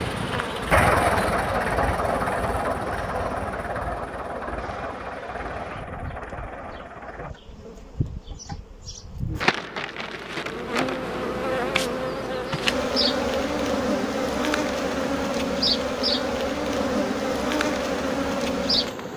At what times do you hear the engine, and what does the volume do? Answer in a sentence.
You can hear the engine from 0.0 to 7.3 s, getting quieter.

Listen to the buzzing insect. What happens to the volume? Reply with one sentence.
The volume of the buzzing insect goes down, then up.